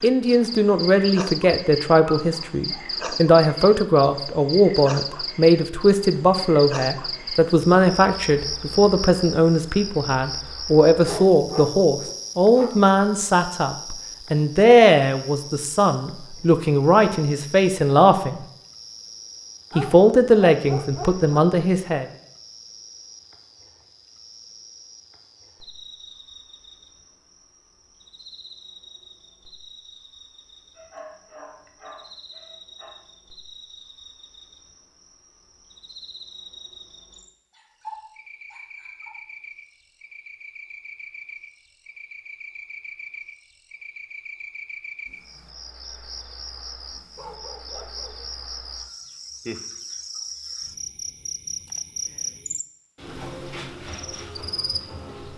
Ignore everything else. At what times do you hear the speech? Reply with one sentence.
The speech can be heard from 0.0 to 18.4 s and from 19.8 to 22.1 s.